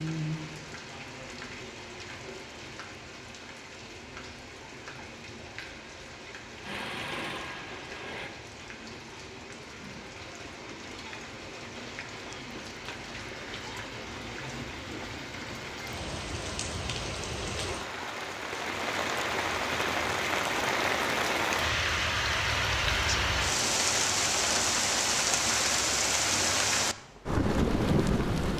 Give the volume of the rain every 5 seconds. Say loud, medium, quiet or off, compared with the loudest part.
quiet, quiet, quiet, medium, loud, loud.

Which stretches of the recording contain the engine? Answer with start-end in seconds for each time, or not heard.
6.6-8.3.